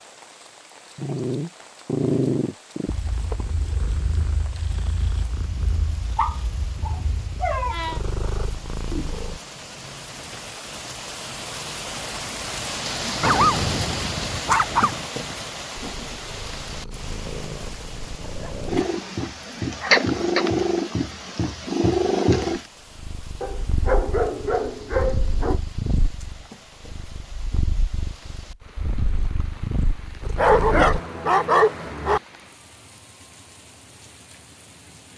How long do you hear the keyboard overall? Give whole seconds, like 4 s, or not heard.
not heard.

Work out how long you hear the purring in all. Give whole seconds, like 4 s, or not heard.
22 s.